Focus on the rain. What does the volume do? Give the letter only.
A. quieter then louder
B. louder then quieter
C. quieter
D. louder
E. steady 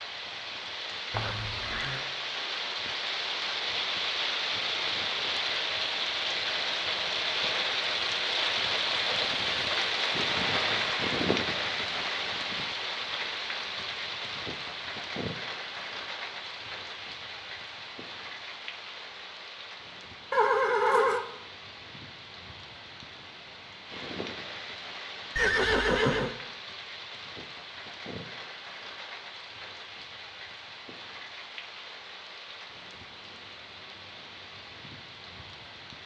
C.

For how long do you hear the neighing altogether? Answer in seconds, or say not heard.
3 s.